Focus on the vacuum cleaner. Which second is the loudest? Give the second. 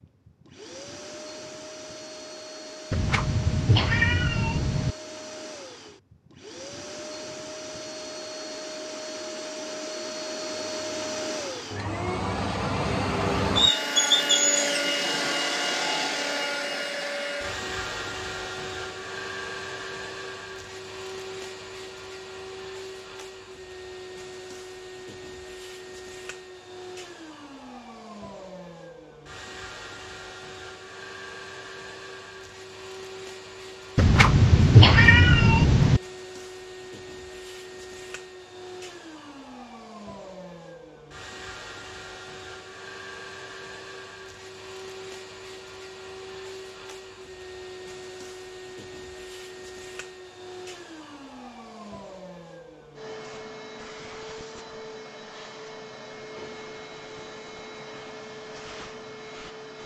14 s.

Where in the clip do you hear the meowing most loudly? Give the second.
35 s.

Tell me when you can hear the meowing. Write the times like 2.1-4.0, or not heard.
2.9-5.0, 34.0-36.0.